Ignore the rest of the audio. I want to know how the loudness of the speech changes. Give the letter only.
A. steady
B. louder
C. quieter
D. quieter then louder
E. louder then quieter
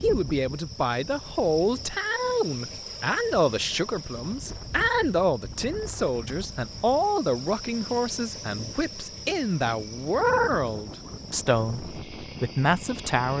A.